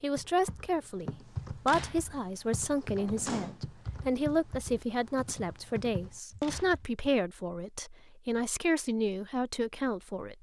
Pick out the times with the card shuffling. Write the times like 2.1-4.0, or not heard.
not heard.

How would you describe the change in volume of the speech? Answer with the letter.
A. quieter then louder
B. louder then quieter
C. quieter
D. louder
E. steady
E.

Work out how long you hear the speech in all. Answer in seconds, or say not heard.
10 s.